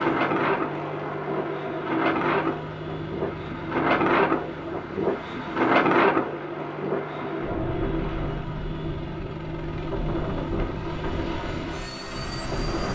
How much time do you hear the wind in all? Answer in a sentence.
The wind can be heard for 13 seconds in total.